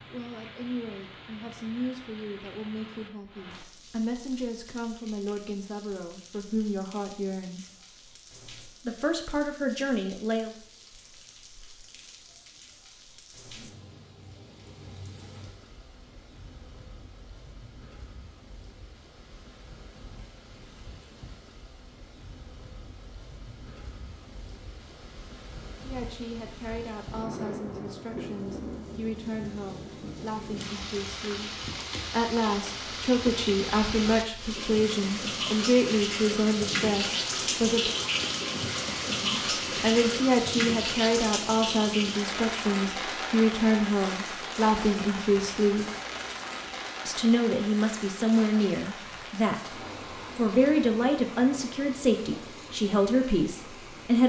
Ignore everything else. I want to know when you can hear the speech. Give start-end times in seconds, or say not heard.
0.1-7.7, 8.8-10.6, 25.9-38.0, 39.2-45.9, 47.0-54.2.